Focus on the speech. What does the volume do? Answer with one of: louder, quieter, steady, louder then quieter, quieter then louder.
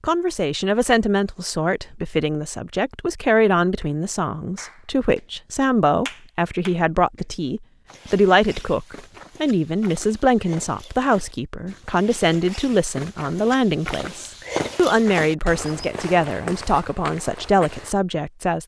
steady.